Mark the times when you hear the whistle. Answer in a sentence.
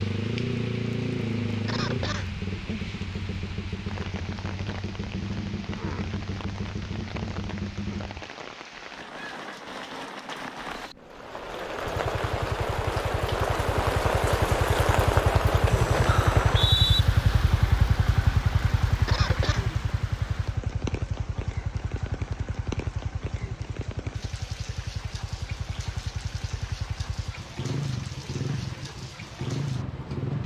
You can hear the whistle from 16.4 to 17.1 s.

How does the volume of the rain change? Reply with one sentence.
The loudness of the rain goes up, then down.